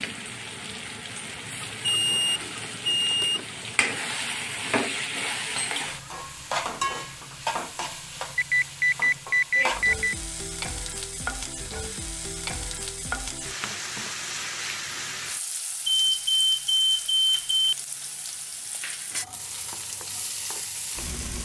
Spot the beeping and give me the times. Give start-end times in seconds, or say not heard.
1.6-3.5, 8.3-10.2, 15.8-17.8.